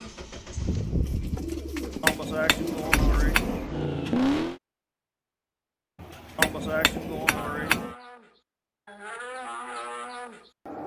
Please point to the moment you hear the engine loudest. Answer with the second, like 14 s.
4 s.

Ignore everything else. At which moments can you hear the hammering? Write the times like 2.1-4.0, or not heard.
2.0-3.6, 6.3-8.0.